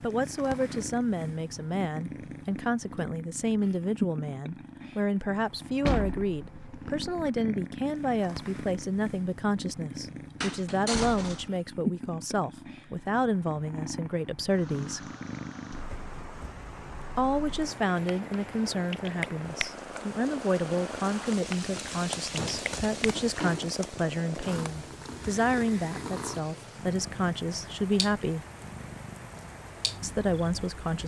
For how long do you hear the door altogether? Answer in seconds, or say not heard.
4 s.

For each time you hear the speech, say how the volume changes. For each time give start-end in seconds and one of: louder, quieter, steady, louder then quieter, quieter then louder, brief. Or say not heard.
0.0-15.1 steady
17.1-28.4 steady
30.0-31.0 brief.